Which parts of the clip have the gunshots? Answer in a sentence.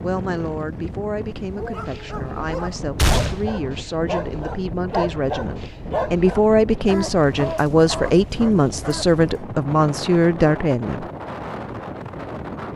You can hear the gunshots from 3.0 to 3.5 s.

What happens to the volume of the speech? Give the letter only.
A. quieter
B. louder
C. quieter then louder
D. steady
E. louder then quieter
B.